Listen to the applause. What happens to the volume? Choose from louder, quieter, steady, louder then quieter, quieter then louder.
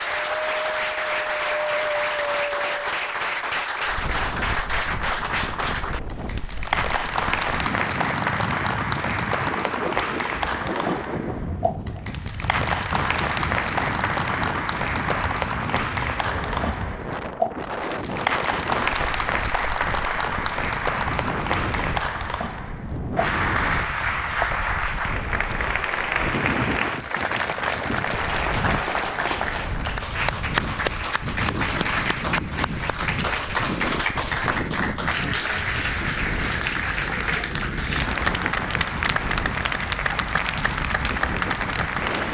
steady.